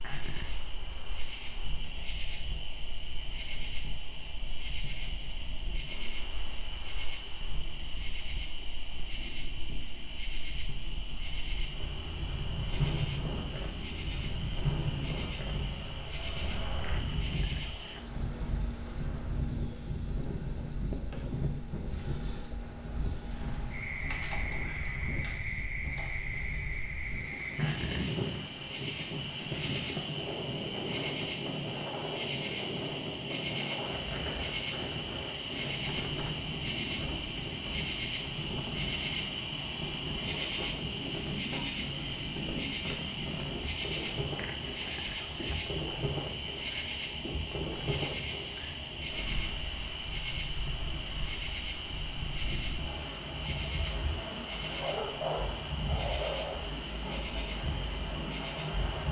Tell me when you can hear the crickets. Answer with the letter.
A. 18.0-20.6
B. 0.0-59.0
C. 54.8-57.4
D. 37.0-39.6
B.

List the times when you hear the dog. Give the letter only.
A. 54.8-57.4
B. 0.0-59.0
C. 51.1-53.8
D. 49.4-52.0
A.